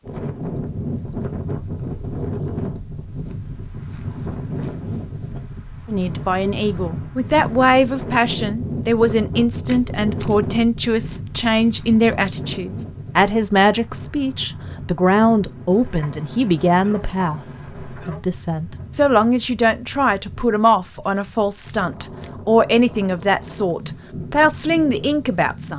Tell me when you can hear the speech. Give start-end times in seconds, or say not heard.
5.8-25.7.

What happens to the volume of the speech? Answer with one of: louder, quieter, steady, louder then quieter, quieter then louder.
steady.